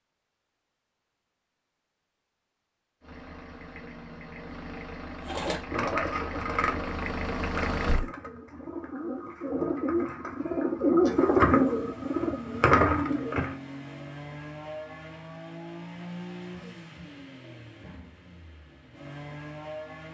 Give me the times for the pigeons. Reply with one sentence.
The pigeons can be heard from 5.2 to 13.6 s.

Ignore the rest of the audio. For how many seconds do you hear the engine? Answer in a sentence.
You can hear the engine for 14 seconds altogether.